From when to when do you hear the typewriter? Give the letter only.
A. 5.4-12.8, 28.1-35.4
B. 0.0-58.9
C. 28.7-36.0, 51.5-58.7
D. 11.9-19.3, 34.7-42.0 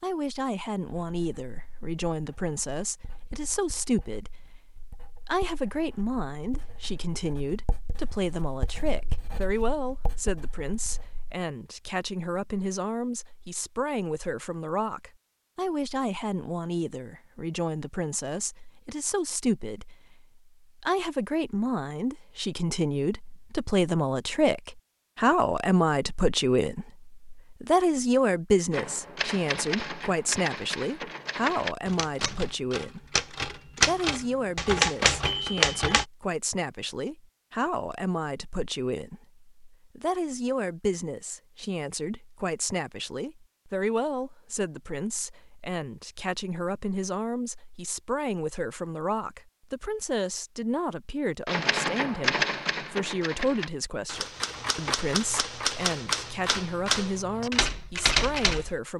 C.